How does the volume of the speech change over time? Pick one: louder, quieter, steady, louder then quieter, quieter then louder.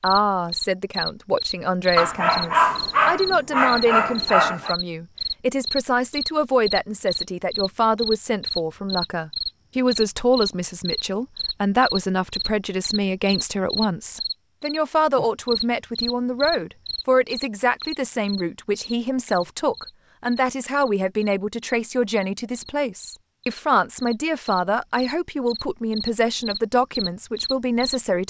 steady.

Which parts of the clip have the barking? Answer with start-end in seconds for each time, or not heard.
1.9-4.8.